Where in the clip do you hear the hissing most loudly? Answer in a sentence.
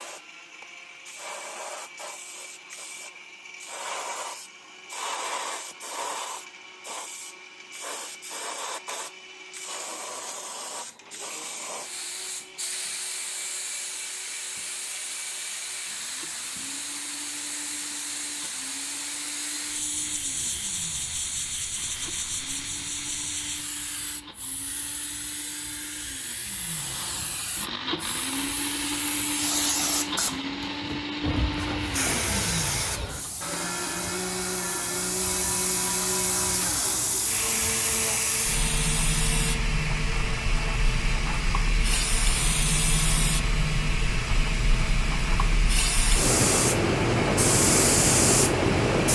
The volume of the hissing peaks at 48 seconds.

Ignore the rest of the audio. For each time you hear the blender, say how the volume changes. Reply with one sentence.
The blender can be heard from 0.0 to 49.0 s, getting louder.